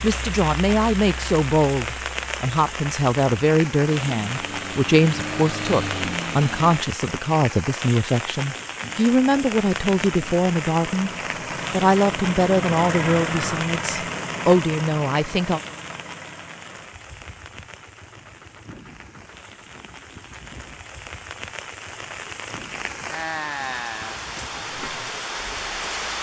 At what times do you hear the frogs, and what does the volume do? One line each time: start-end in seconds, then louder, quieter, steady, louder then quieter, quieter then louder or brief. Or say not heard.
not heard.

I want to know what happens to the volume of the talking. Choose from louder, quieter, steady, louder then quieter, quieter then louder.
steady.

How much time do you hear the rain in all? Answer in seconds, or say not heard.
26 s.